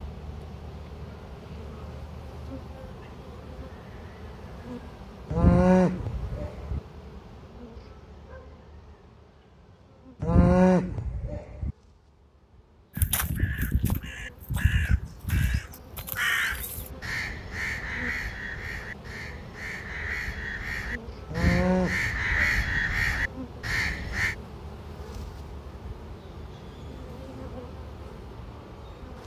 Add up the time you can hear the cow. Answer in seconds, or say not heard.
4 s.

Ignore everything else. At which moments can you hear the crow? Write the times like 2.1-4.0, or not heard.
12.9-24.4.